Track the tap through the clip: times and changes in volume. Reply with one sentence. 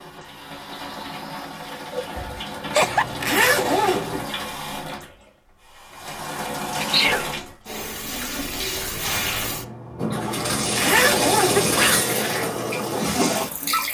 The tap can be heard from 0.0 to 13.9 s, getting louder.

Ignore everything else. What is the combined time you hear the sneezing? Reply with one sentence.
The sneezing can be heard for 2 seconds in total.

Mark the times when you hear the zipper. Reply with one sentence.
The zipper can be heard from 2.8 to 4.2 s and from 10.3 to 11.8 s.